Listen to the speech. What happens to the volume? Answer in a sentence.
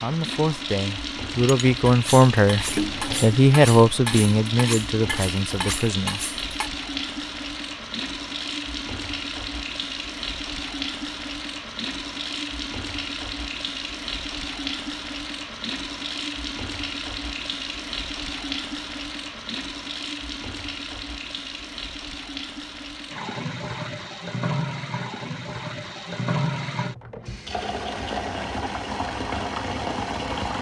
The loudness of the speech goes up, then down.